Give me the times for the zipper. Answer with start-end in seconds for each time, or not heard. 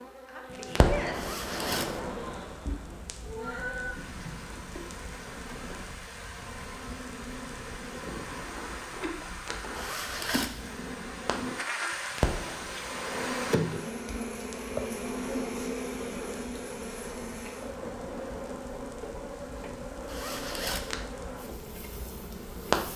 1.1-2.0, 9.8-10.7, 20.1-20.9.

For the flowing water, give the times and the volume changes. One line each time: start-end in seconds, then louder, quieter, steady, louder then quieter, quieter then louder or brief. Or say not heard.
not heard.